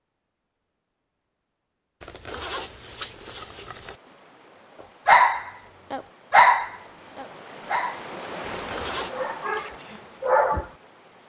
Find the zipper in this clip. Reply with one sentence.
You can hear the zipper from 2.0 to 4.0 s and from 8.5 to 9.2 s.